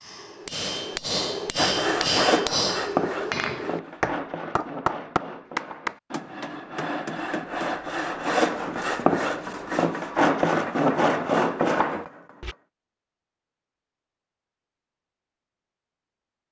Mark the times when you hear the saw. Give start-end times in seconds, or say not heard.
1.6-12.6.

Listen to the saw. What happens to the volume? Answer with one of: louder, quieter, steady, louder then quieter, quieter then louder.
quieter then louder.